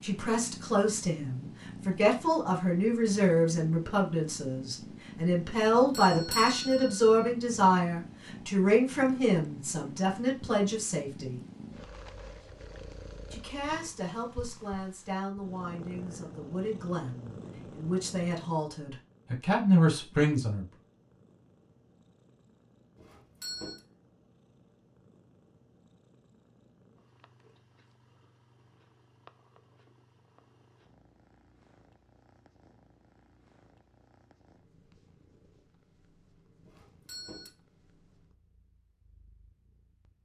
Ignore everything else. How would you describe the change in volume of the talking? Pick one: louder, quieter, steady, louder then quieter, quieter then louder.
quieter then louder.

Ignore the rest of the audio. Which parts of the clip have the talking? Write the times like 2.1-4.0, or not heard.
0.0-11.4, 13.3-20.6.